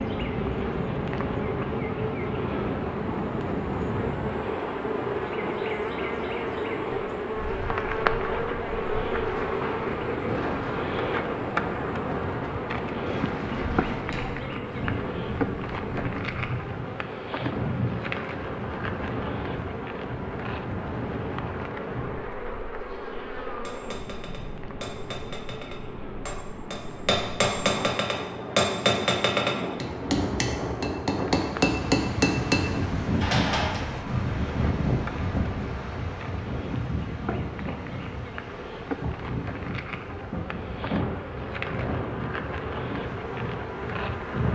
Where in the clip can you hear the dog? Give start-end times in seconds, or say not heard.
not heard.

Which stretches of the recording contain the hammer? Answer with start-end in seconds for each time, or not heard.
23.6-33.8.